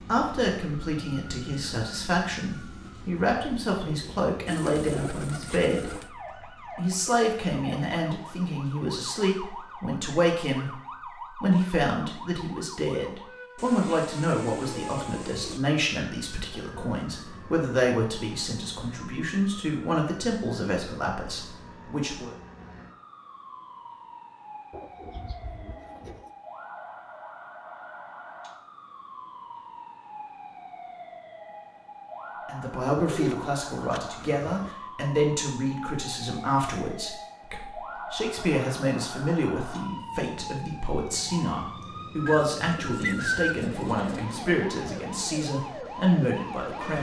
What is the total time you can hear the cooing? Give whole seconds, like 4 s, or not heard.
9 s.